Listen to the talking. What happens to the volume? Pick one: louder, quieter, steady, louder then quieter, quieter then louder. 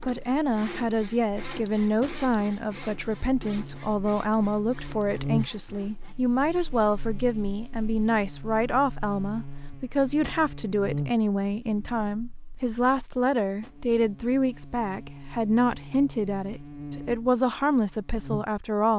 steady.